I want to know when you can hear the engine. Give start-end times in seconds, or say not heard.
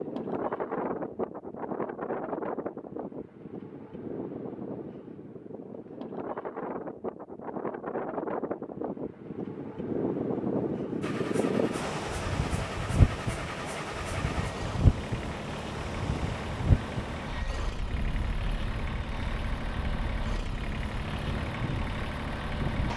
11.0-22.9.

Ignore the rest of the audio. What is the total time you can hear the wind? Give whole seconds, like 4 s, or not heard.
23 s.